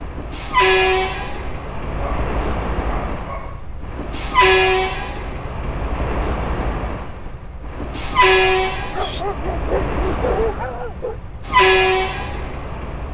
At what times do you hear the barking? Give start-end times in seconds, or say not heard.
1.9-3.6, 8.9-11.2.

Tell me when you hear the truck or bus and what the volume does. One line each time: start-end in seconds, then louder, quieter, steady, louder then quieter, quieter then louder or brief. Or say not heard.
0.0-13.0 quieter then louder.